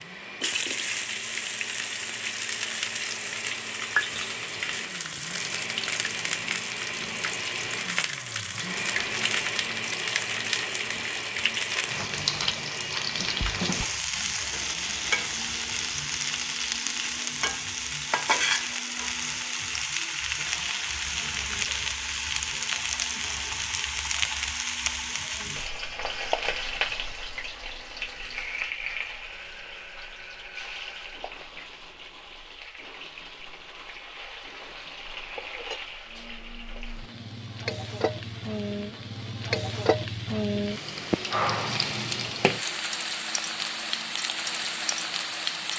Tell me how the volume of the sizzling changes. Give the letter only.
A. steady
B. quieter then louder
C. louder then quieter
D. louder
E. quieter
B.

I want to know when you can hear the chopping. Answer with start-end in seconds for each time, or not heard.
not heard.